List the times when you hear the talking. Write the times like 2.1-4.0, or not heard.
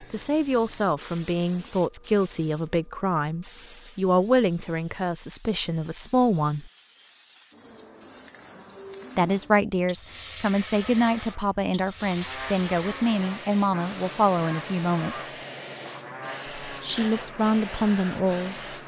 0.0-6.7, 9.2-15.3, 16.6-18.6.